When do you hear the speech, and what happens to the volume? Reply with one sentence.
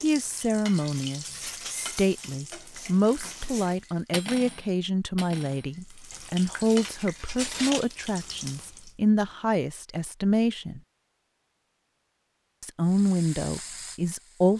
You can hear the speech from 0.0 to 10.8 s, at a steady volume; and briefly from 12.6 to 14.5 s.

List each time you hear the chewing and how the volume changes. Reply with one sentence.
The chewing can't be heard in this clip.